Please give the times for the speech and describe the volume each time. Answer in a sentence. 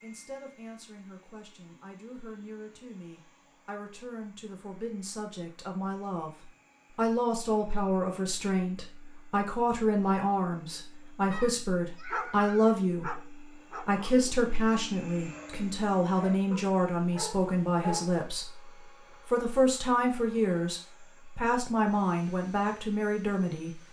The speech can be heard from 0.0 to 23.8 s, getting louder.